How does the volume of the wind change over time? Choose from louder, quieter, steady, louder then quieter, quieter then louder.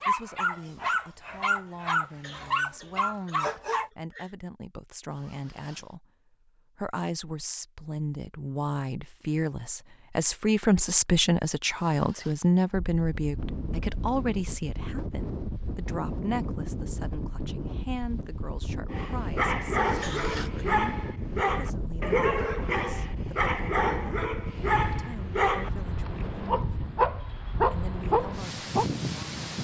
steady.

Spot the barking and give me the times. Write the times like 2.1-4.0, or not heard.
0.0-3.9, 18.9-28.9.